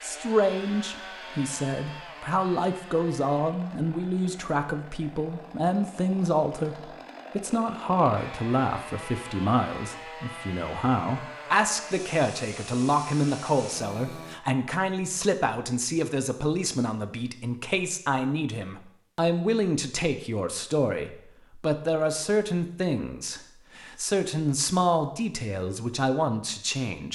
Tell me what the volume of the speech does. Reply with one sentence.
The loudness of the speech stays about the same.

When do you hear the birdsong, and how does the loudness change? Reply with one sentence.
You can't hear the birdsong here.